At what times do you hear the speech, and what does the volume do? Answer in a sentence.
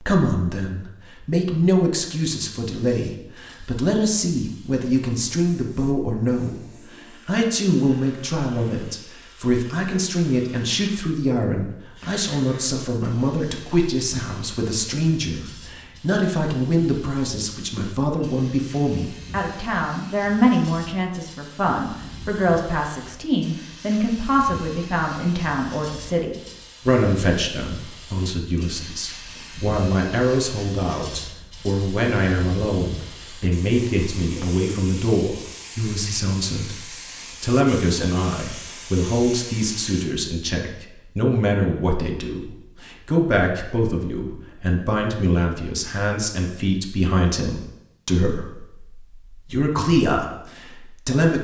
You can hear the speech from 0.0 to 51.3 s, at a steady volume.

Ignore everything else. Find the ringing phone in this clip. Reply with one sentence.
You can't hear the ringing phone here.